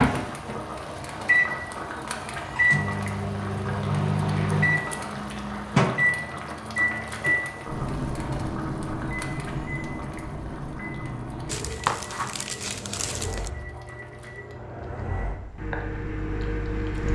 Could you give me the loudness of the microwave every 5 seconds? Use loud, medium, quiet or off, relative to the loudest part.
loud, loud, quiet, medium.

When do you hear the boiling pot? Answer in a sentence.
You can hear the boiling pot from 0.0 to 17.1 s.